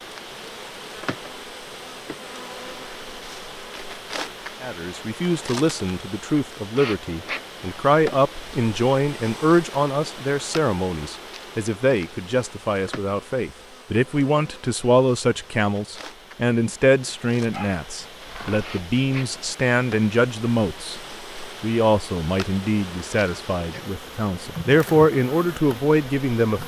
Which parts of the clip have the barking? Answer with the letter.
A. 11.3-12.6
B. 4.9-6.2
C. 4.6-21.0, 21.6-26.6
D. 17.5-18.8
D.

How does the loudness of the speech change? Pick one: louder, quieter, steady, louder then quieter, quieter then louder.
steady.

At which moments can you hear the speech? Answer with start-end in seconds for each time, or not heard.
4.6-21.0, 21.6-26.6.